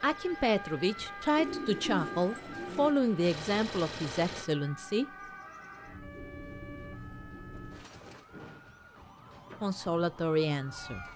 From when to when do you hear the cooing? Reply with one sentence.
You can hear the cooing from 1.4 to 3.0 s and from 6.1 to 7.7 s.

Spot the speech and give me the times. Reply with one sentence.
The speech can be heard from 0.0 to 5.0 s and from 9.6 to 11.1 s.